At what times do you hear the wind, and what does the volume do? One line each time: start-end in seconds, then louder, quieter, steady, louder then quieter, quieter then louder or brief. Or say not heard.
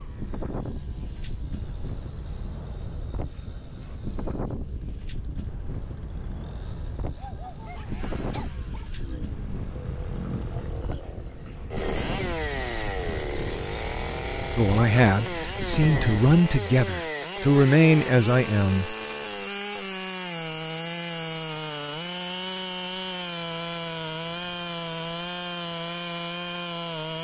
0.0-16.2 steady.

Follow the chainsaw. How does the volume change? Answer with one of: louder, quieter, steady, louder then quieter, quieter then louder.
louder.